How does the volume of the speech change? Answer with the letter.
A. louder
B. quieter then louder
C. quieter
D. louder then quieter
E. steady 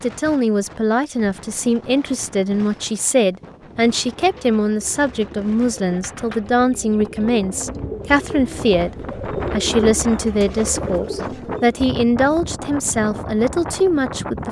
E.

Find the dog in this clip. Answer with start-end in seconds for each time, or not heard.
not heard.